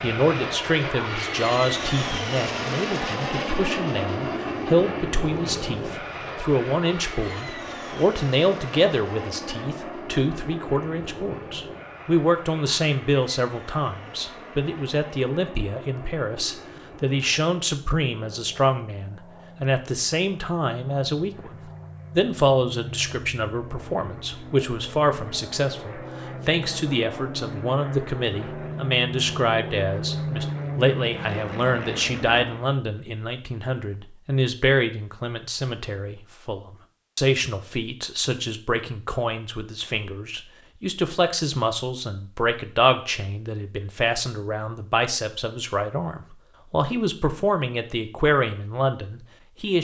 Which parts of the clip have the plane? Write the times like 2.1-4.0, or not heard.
0.0-32.6.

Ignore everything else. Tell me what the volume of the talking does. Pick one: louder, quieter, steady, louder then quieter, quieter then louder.
steady.